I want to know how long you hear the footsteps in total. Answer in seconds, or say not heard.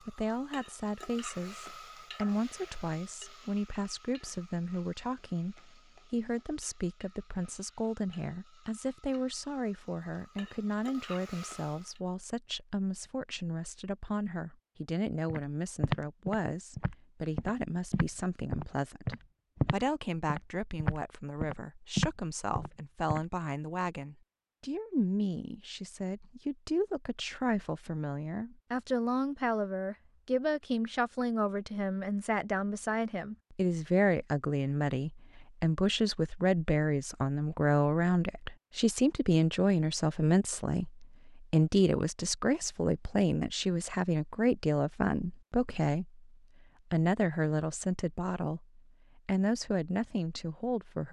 8 s.